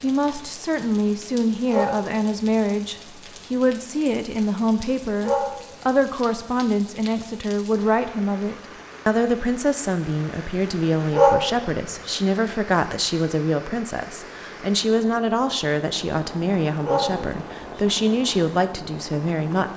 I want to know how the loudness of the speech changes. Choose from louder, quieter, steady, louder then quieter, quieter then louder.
steady.